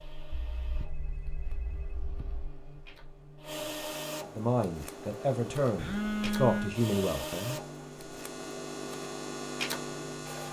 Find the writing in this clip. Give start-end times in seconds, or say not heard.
not heard.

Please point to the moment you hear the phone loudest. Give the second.
6 s.